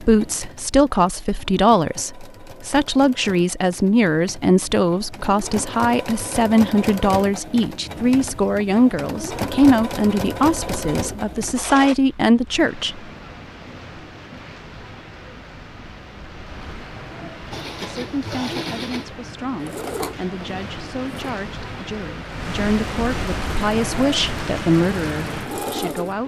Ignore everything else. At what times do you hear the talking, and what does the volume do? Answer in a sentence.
You can hear the talking from 0.0 to 13.1 s, at a steady volume; and from 17.2 to 26.2 s, getting louder.